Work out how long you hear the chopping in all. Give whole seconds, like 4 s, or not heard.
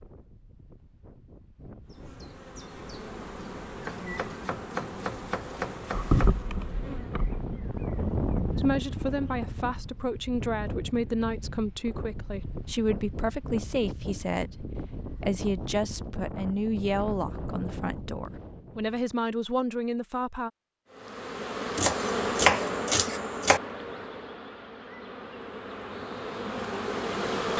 4 s.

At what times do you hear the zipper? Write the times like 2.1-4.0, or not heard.
not heard.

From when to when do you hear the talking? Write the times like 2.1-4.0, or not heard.
8.6-20.5.